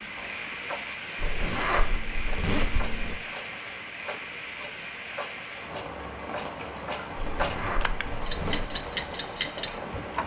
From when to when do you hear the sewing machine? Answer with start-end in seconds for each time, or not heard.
not heard.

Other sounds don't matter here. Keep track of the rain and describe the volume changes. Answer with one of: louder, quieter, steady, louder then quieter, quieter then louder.
steady.